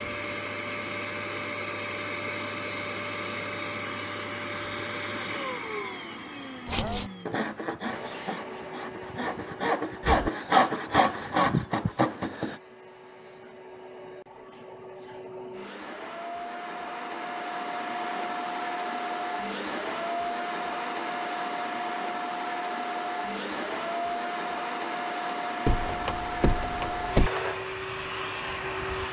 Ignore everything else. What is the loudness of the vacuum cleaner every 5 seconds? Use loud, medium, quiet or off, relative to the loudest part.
loud, medium, quiet, loud, loud, loud.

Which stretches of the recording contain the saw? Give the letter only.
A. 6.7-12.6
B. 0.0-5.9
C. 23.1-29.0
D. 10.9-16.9
A.